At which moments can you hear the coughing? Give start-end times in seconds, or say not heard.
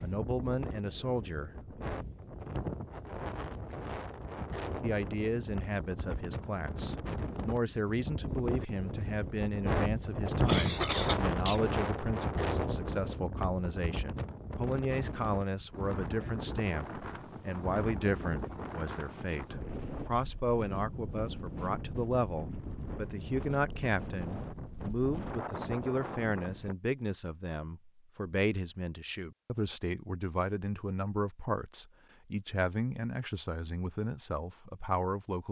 10.2-11.6.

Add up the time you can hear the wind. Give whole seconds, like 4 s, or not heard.
27 s.